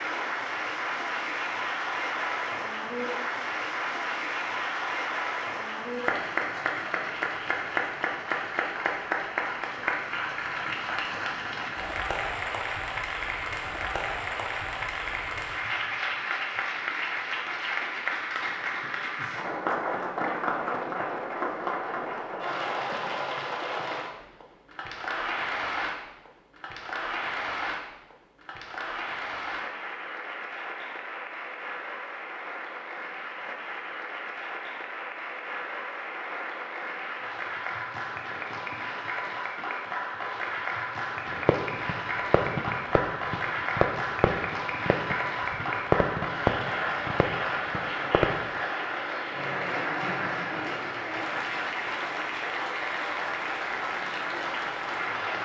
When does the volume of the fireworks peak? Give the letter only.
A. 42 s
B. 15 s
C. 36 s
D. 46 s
D.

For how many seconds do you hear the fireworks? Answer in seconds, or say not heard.
7 s.